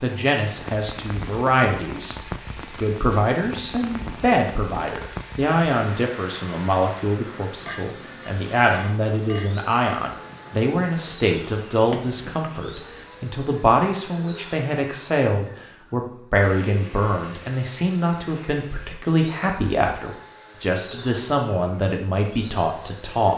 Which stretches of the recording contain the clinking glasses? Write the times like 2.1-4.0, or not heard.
7.7-10.0, 11.9-12.5.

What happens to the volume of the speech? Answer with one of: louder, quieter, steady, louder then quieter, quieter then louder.
steady.